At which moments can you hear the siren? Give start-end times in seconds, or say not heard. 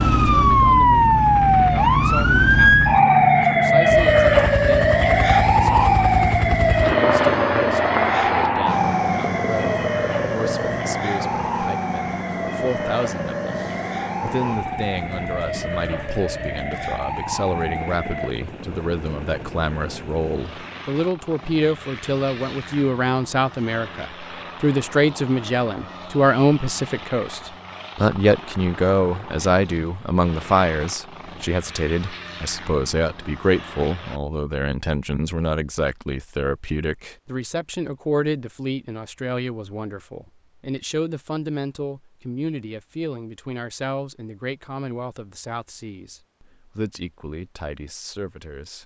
0.0-18.3.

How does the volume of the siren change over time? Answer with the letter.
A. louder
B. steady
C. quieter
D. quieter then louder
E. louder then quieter
C.